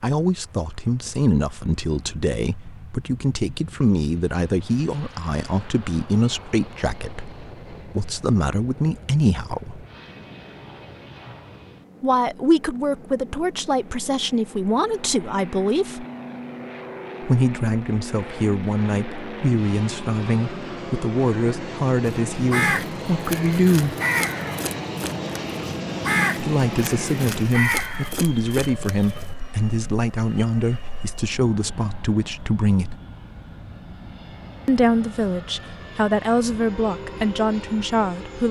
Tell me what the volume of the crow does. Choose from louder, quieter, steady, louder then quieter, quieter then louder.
louder then quieter.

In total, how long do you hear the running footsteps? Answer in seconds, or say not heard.
not heard.